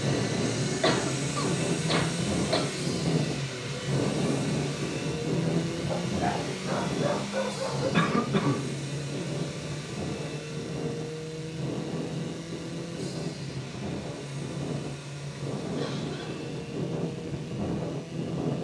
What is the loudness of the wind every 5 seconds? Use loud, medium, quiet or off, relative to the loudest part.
loud, loud, medium, loud.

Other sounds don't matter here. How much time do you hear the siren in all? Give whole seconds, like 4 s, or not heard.
not heard.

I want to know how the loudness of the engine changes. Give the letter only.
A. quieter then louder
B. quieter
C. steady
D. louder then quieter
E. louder
B.